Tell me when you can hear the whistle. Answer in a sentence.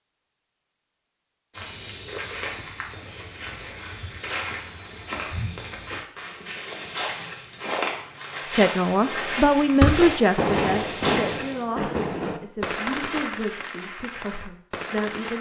The whistle can't be heard in this clip.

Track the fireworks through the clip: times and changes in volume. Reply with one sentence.
You can hear the fireworks from 9.1 to 15.3 s, getting quieter.